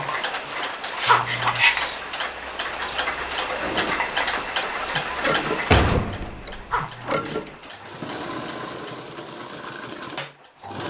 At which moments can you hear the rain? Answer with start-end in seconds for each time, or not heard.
not heard.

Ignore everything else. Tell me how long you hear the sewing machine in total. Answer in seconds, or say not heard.
7 s.